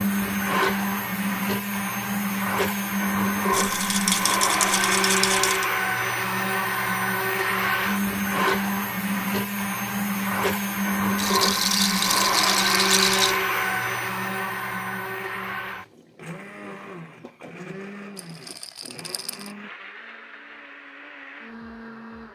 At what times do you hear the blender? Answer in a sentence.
The blender can be heard from 0.0 to 22.3 s.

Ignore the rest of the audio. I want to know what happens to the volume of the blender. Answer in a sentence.
The loudness of the blender goes down.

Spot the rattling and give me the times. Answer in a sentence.
The rattling can be heard from 3.5 to 5.7 s, from 11.2 to 13.4 s and from 18.1 to 19.6 s.